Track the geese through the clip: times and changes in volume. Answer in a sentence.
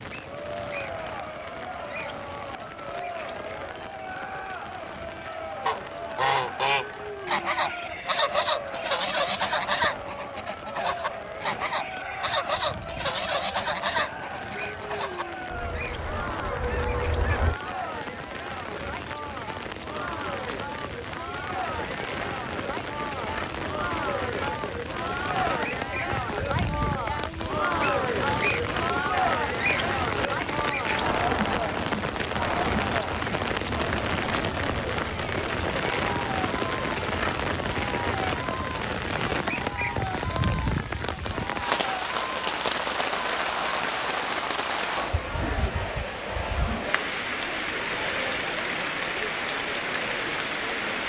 The geese can be heard from 5.7 to 17.6 s, getting quieter.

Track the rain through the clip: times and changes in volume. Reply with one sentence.
The rain can be heard from 0.0 to 51.0 s, getting louder.